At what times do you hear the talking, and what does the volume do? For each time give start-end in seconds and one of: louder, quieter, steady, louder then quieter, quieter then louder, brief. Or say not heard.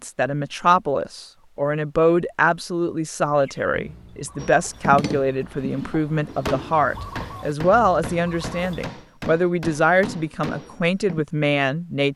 0.0-12.1 steady.